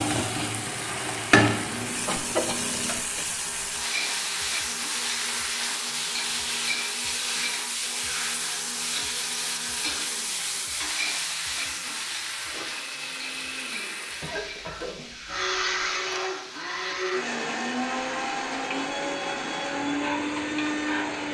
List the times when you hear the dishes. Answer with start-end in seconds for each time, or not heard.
not heard.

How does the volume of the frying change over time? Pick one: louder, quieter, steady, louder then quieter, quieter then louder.
quieter.